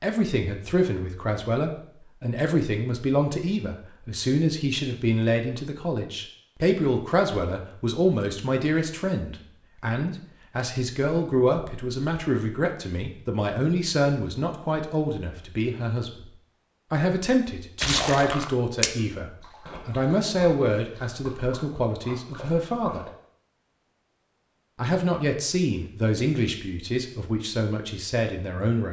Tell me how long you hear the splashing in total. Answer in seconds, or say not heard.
5 s.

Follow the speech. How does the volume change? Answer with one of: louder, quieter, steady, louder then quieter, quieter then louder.
steady.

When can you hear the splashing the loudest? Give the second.
18 s.